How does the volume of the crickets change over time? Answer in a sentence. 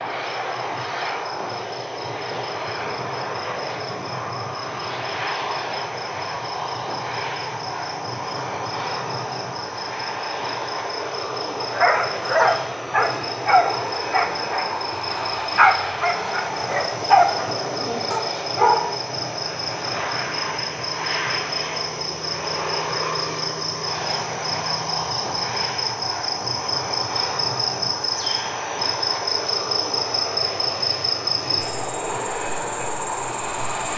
The loudness of the crickets goes up.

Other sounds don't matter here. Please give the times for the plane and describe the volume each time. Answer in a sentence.
You can hear the plane from 0.0 to 33.9 s, at a steady volume.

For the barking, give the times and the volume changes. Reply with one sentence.
The barking can be heard from 11.7 to 18.9 s, at a steady volume.